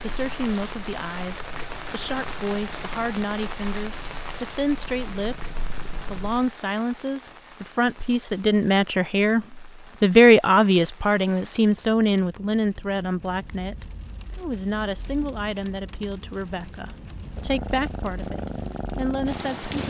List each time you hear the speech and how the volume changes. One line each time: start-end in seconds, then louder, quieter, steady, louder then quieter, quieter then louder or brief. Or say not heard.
0.0-19.7 louder then quieter.